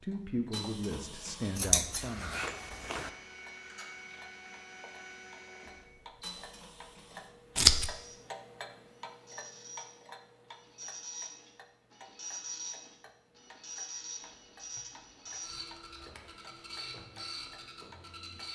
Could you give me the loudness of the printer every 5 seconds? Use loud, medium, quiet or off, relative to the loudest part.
loud, medium, loud, loud.